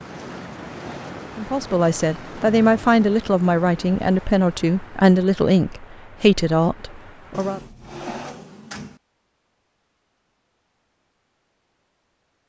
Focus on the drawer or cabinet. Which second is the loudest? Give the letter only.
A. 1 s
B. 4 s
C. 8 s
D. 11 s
C.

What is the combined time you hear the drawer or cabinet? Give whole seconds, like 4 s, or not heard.
3 s.